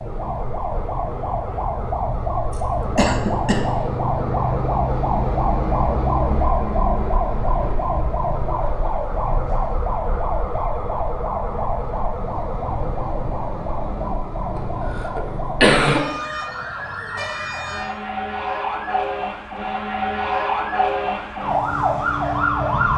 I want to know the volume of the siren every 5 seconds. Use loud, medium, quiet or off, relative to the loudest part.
loud, loud, medium, medium, loud.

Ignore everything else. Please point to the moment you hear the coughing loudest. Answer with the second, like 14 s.
16 s.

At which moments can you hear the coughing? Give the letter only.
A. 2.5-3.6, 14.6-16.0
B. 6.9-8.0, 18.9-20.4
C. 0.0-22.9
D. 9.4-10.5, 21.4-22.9
A.